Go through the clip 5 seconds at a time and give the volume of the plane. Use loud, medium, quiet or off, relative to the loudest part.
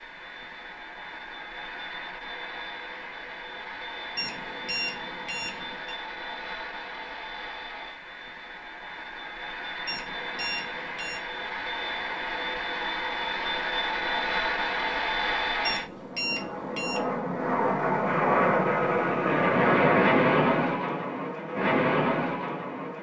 quiet, quiet, medium, loud, loud.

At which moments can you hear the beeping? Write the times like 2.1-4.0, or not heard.
4.2-6.0, 9.8-11.2, 15.7-17.0.